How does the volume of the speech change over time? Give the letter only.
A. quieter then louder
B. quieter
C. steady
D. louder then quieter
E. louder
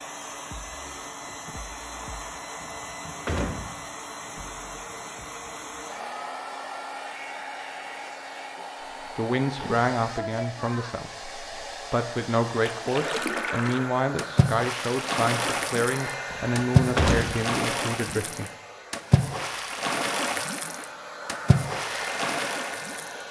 C.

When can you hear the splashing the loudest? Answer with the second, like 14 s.
17 s.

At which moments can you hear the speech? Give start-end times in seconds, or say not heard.
9.2-18.5.